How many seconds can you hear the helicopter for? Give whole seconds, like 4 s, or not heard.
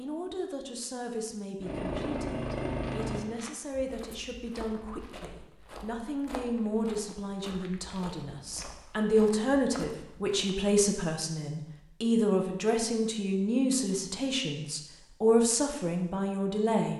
2 s.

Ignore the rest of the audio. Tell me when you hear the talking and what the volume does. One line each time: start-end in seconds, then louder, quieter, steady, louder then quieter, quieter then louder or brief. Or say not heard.
0.0-16.9 louder.